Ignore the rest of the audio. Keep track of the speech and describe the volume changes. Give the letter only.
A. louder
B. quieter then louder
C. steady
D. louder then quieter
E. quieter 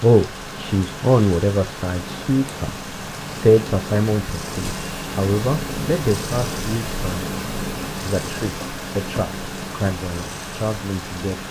E.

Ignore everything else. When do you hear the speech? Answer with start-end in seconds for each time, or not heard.
0.0-7.3, 8.1-11.4.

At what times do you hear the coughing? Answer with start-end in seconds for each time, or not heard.
not heard.